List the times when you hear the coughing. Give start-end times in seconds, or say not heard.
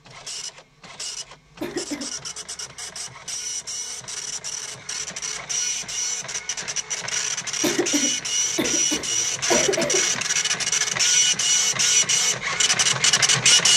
1.6-2.1, 7.6-10.2.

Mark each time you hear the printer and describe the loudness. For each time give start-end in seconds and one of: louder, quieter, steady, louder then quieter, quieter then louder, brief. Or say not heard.
0.0-13.7 louder.